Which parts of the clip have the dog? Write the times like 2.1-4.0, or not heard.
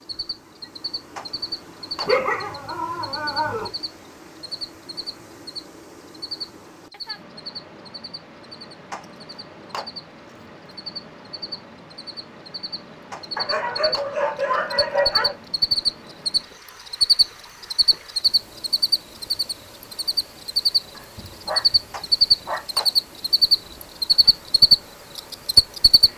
2.0-3.7, 13.3-15.3, 20.9-22.6.